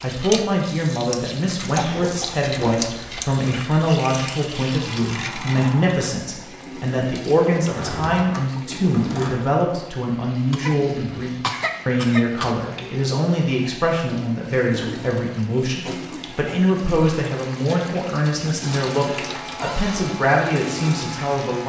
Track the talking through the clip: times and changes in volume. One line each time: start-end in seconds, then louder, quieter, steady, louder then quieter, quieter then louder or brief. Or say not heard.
0.0-21.6 steady.